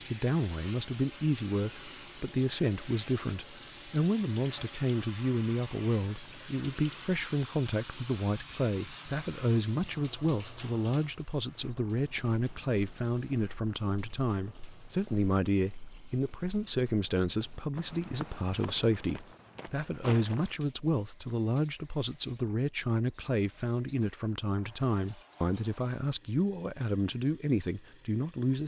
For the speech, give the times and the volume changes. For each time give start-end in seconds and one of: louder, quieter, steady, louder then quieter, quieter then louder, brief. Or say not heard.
0.1-28.6 steady.